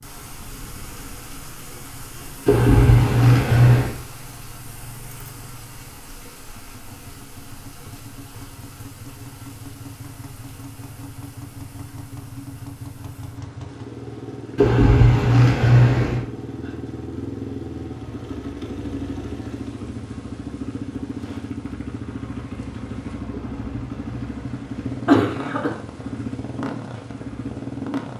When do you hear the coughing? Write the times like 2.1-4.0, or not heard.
2.5-4.0, 14.6-16.2, 23.4-25.8.